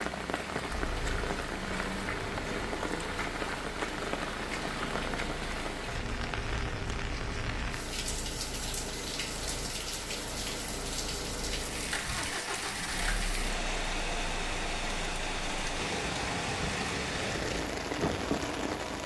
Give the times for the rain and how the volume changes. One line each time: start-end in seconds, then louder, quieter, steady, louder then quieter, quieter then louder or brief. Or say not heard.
0.0-19.0 steady.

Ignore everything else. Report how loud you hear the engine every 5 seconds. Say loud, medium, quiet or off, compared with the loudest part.
medium, medium, loud, loud.